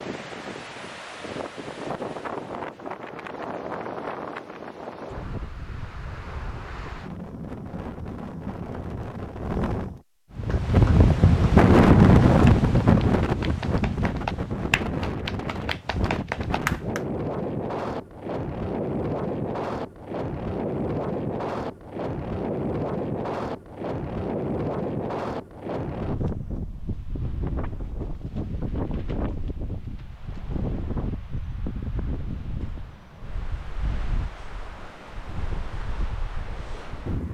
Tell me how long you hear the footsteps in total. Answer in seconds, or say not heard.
not heard.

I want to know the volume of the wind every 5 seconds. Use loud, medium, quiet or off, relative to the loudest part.
quiet, quiet, loud, medium, medium, quiet, quiet, quiet.